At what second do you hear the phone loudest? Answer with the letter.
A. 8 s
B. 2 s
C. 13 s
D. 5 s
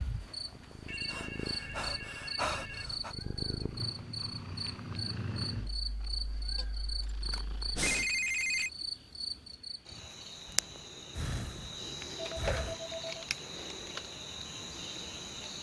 A.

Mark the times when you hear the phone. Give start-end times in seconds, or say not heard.
0.8-2.9, 6.5-8.7, 12.2-13.2.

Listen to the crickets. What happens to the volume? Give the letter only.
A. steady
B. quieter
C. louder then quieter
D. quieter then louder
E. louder
A.